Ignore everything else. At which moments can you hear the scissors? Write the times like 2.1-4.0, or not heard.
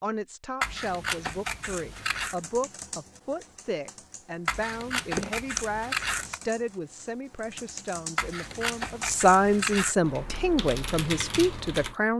0.6-2.4, 4.5-6.4, 8.2-9.9.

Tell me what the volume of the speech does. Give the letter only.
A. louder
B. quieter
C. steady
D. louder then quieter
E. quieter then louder
A.